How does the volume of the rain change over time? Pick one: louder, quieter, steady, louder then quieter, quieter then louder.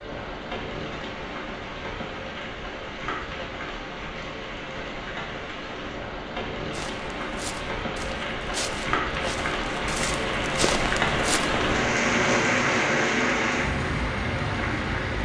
louder.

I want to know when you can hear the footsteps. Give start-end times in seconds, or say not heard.
6.7-11.6.